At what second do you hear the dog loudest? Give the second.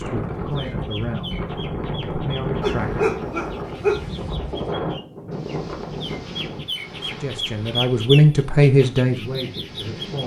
4 s.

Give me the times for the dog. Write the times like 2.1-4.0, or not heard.
2.6-4.0.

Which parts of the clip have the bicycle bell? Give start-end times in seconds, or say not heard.
not heard.